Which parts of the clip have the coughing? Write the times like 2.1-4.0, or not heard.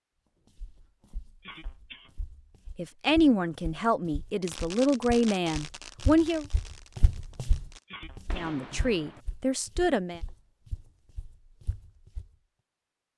1.4-2.1, 7.8-8.6.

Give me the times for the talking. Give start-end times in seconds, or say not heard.
2.8-6.5, 8.3-10.2.